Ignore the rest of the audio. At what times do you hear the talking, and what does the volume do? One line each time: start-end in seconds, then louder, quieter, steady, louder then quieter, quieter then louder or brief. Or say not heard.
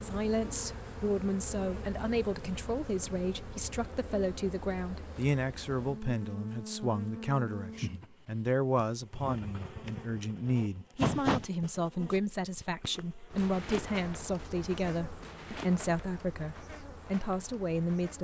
0.0-18.1 steady.